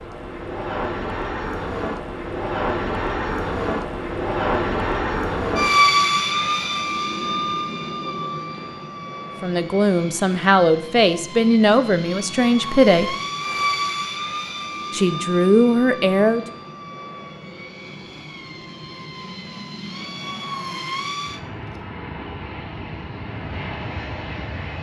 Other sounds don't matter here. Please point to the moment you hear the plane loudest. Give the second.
6 s.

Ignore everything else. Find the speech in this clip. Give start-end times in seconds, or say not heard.
9.4-13.2, 14.9-16.4.